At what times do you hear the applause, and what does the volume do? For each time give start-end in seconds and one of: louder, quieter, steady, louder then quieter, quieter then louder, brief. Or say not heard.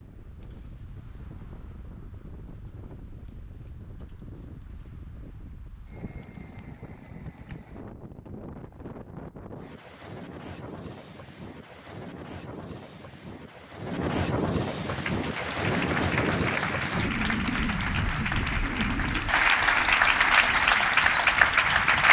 14.8-22.0 louder.